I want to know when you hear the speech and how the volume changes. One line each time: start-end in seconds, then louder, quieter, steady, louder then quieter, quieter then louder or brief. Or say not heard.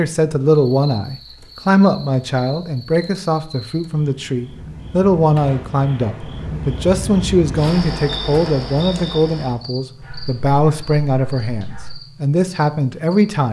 0.0-13.4 steady.